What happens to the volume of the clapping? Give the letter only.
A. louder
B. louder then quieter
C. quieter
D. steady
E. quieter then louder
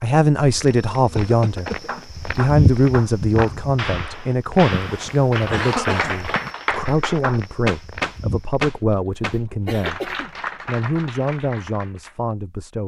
B.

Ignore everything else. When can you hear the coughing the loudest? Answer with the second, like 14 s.
6 s.